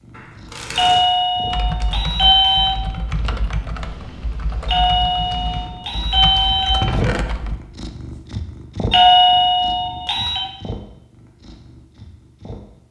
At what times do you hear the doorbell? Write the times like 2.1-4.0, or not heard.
0.8-2.8, 4.7-6.8, 8.9-10.4.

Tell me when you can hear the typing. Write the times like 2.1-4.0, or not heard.
1.4-7.6.